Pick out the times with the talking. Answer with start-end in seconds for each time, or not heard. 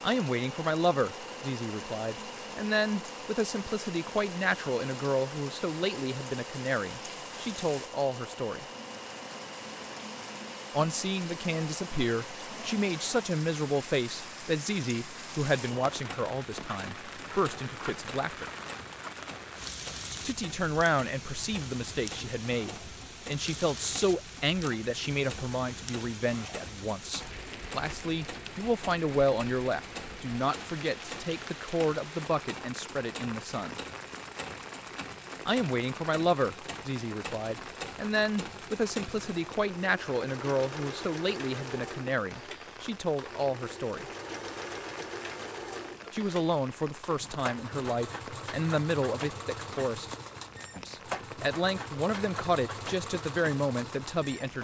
0.0-8.7, 10.7-18.4, 20.2-33.8, 35.5-44.0, 46.1-50.1, 50.8-54.5.